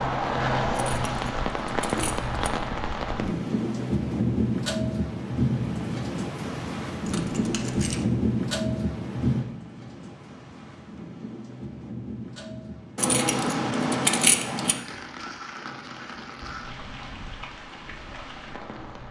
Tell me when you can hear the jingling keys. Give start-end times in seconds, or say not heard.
0.8-2.4, 7.0-8.1, 12.9-14.8.